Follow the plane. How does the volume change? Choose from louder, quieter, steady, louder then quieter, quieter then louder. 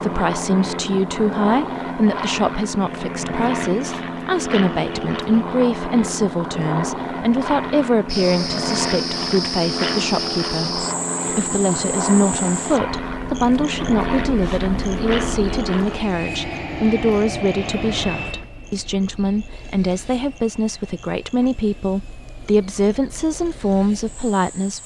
quieter.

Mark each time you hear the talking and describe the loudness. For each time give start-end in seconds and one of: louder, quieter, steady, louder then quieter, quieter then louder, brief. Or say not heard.
0.0-24.8 steady.